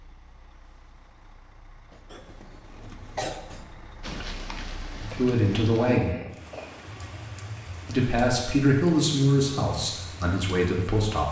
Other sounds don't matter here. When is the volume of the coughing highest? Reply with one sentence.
The loudest moment of the coughing is at 3 seconds.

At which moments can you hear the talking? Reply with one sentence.
You can hear the talking from 5.0 to 6.2 s and from 7.8 to 11.2 s.